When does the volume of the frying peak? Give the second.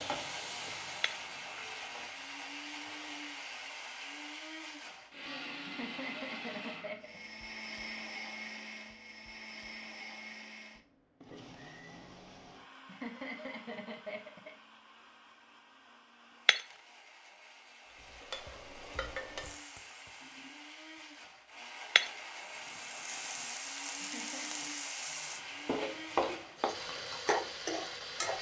26 s.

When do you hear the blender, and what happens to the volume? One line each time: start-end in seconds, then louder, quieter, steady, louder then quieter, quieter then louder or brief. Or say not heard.
0.0-28.3 quieter then louder.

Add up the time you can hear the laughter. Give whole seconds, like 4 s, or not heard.
4 s.